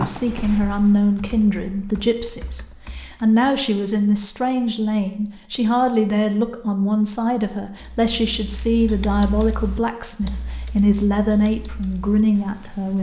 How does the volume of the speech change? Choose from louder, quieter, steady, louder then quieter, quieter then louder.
steady.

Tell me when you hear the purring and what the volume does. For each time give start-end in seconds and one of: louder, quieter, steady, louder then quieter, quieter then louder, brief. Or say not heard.
not heard.